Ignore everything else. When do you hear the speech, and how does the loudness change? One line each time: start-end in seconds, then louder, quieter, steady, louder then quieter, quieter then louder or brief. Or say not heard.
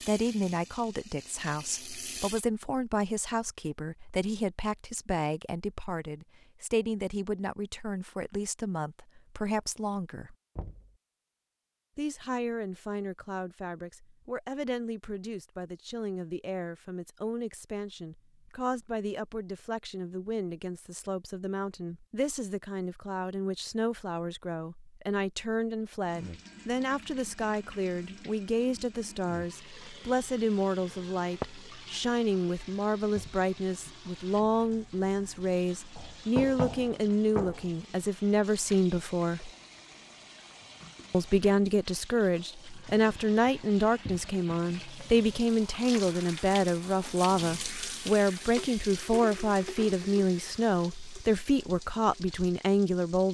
0.1-10.3 steady
11.9-39.5 louder
41.1-53.3 steady.